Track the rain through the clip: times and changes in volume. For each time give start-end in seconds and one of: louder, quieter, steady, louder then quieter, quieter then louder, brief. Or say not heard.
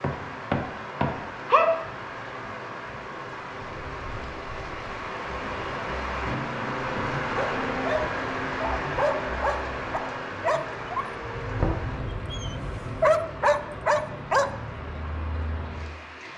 0.0-16.3 louder then quieter.